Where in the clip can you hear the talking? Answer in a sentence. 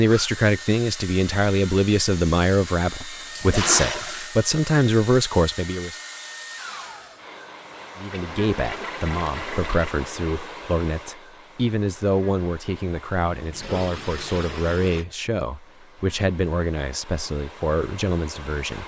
The talking can be heard from 0.0 to 6.0 s and from 8.0 to 18.8 s.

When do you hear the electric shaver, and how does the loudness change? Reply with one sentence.
The electric shaver can't be heard in this clip.